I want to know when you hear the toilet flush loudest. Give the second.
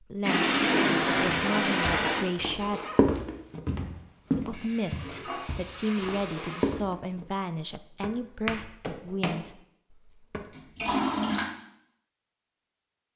1 s.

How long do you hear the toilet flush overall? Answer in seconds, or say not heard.
5 s.